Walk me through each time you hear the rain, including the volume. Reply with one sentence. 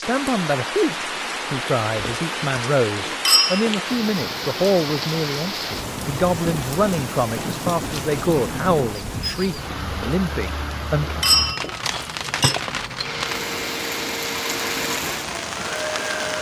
You can hear the rain from 0.0 to 16.3 s, at a steady volume.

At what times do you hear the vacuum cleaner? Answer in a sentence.
The vacuum cleaner can be heard from 13.0 to 16.3 s.